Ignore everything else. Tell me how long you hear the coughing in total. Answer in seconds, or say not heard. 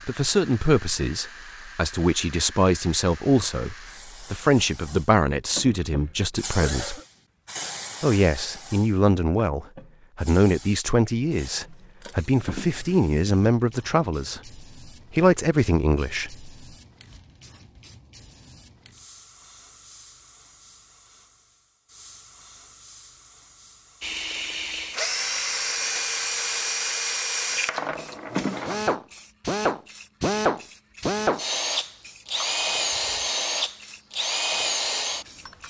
3 s.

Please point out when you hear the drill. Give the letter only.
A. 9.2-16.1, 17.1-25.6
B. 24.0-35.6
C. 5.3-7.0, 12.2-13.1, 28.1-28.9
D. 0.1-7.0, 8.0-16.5
B.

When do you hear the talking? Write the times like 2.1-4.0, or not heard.
0.1-7.0, 8.0-16.5.